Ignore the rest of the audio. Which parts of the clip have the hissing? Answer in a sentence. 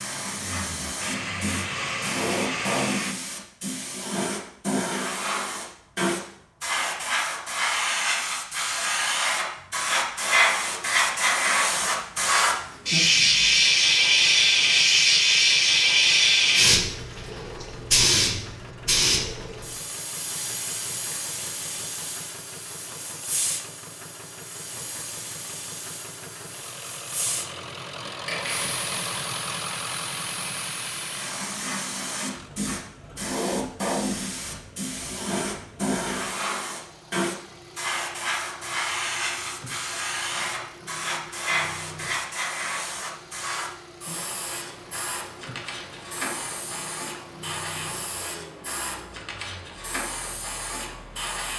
The hissing can be heard from 0.0 to 51.5 s.